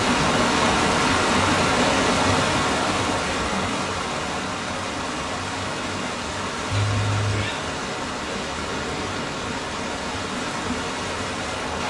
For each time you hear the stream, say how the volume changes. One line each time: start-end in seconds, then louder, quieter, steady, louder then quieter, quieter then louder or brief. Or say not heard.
0.0-11.8 quieter.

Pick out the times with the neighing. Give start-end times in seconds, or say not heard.
6.7-7.5.